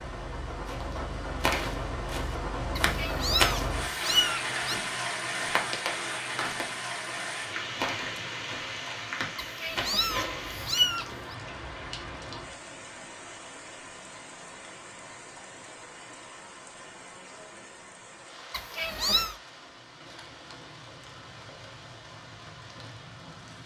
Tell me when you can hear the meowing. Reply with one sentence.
The meowing can be heard from 2.8 to 4.8 s, from 9.3 to 11.3 s and from 18.5 to 19.4 s.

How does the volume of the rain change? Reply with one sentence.
The loudness of the rain goes down.